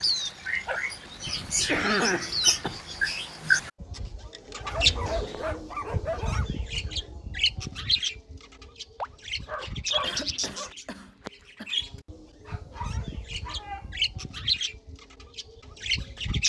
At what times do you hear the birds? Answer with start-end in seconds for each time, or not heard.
0.0-16.4.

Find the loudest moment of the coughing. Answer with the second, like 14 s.
2 s.